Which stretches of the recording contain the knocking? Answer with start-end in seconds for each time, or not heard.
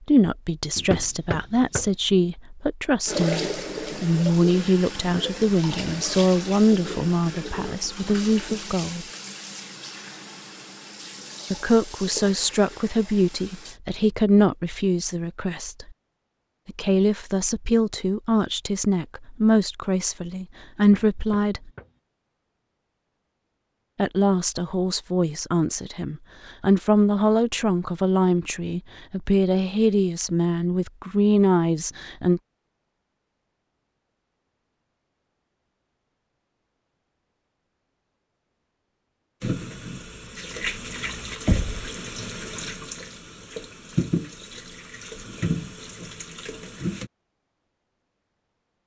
0.8-1.9, 20.8-21.9, 41.5-41.9.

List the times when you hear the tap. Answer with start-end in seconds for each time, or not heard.
3.0-13.8, 39.4-47.1.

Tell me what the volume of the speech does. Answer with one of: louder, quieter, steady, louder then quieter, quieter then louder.
steady.